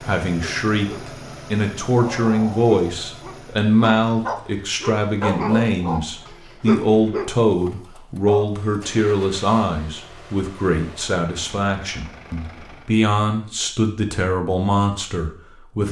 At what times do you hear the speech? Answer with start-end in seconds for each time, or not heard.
0.1-15.8.